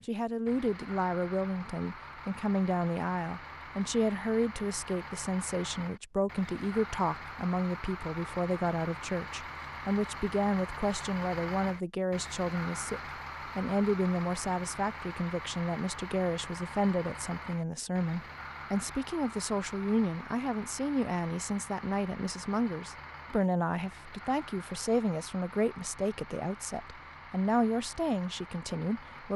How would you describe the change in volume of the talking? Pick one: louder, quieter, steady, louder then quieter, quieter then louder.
steady.